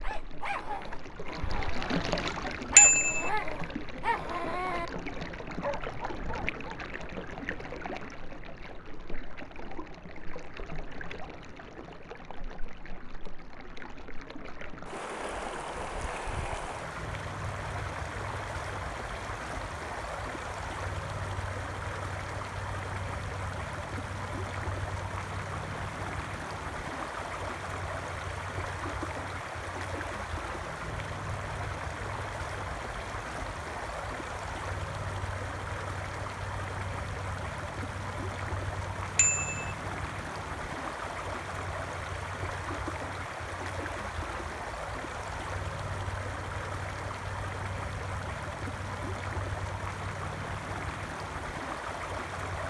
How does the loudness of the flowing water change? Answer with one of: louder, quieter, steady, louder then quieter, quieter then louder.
steady.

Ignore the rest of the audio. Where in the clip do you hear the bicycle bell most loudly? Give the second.
3 s.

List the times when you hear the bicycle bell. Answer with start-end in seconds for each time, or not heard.
2.8-3.3, 39.1-39.8.